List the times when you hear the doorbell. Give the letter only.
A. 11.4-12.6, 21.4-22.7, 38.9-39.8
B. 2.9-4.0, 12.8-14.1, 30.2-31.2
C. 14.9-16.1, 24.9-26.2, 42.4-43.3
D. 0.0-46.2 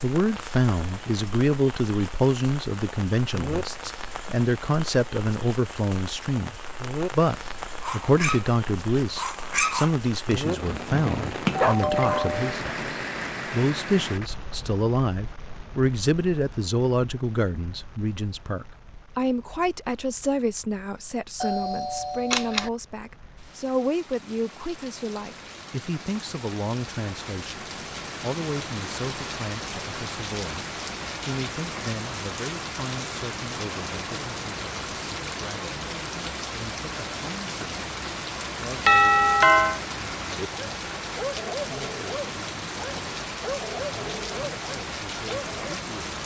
A.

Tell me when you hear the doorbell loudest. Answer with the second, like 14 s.
39 s.